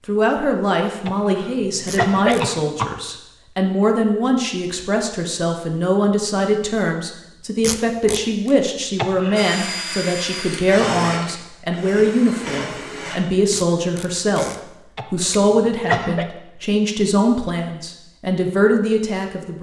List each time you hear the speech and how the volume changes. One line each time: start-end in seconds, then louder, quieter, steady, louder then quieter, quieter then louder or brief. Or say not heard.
0.1-19.5 steady.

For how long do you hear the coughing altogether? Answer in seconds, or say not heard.
4 s.